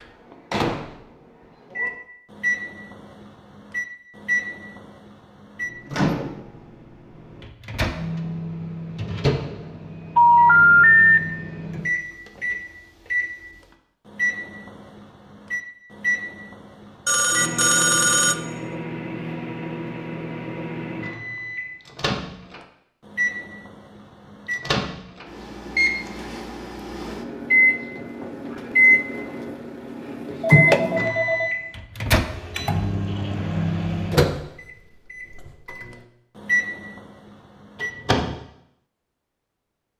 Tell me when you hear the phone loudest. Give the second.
11 s.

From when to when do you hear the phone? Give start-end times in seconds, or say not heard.
10.2-11.2, 17.1-18.4, 30.4-31.5.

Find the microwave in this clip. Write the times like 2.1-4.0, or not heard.
0.0-38.4.